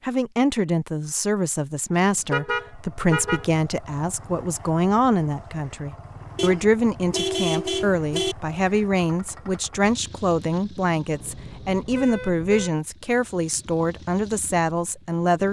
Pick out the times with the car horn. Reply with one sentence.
The car horn can be heard from 2.3 to 3.5 s, from 6.3 to 8.3 s and from 11.1 to 12.8 s.